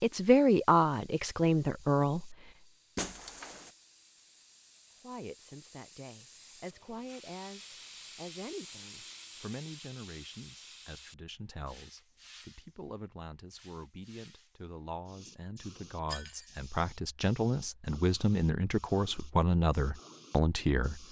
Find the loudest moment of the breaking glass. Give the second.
3 s.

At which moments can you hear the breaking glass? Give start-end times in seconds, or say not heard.
3.0-3.7, 16.1-16.6.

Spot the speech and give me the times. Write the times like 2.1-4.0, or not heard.
0.0-2.4, 5.0-21.0.